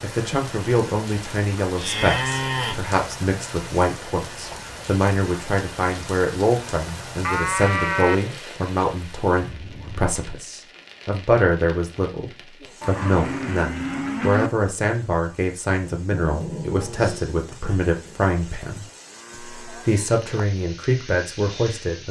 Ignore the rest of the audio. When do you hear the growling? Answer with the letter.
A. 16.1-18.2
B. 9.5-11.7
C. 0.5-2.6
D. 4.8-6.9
A.